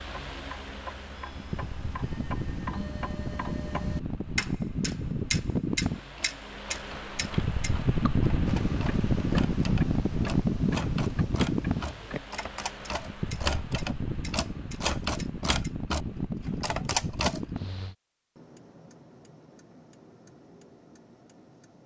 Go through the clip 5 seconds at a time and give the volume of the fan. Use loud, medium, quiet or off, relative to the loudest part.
medium, loud, loud, medium, off.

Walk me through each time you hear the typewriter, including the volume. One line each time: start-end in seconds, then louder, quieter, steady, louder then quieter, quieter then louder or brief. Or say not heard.
6.2-17.4 louder.